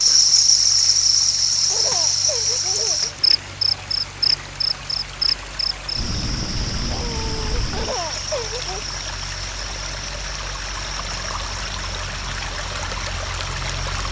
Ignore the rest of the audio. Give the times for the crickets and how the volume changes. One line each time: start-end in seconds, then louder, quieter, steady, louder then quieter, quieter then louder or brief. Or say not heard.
0.0-14.0 quieter.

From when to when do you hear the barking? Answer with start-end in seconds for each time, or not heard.
6.8-7.7.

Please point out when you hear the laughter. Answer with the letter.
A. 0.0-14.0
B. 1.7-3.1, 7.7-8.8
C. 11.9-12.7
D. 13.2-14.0
B.